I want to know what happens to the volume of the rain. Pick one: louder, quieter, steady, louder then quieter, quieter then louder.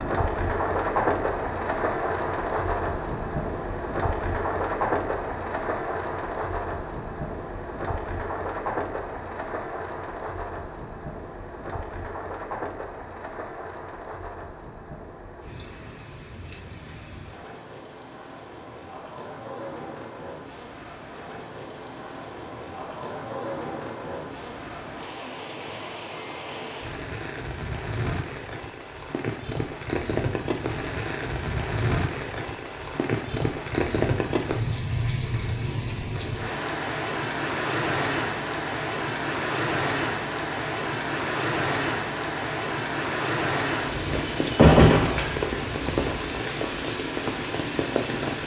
quieter then louder.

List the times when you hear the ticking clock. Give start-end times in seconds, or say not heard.
not heard.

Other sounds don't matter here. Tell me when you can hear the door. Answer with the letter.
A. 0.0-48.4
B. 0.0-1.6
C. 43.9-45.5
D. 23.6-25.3
C.